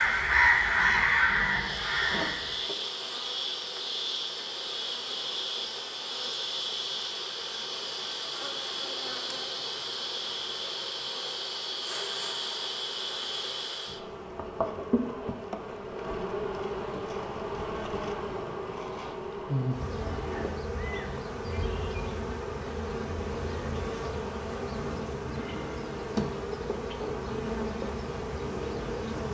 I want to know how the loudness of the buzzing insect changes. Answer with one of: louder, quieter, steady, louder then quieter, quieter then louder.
steady.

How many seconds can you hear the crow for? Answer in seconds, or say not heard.
3 s.